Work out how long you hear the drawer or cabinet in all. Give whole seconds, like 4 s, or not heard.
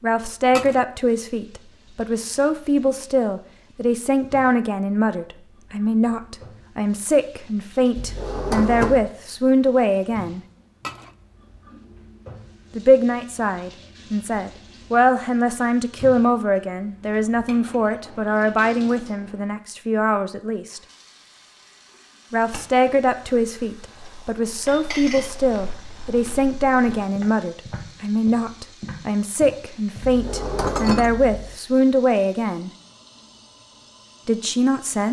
3 s.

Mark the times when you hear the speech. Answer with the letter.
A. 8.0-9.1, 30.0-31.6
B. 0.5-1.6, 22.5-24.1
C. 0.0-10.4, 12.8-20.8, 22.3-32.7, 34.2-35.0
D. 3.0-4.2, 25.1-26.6
C.